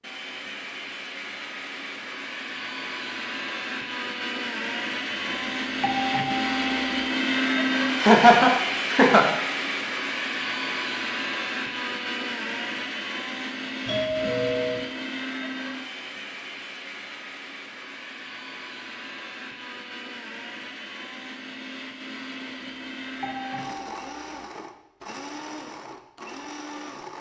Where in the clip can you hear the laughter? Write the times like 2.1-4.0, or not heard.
8.0-9.2.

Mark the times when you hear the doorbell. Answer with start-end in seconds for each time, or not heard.
5.2-7.1, 13.8-14.9, 22.6-24.5.